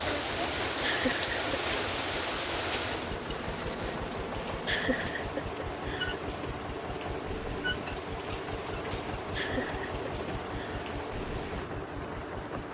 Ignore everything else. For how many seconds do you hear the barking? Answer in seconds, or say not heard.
not heard.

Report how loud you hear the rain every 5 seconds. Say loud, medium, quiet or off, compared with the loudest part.
loud, medium, medium.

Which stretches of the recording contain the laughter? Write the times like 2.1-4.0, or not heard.
0.8-1.6, 4.7-6.2, 9.3-10.8.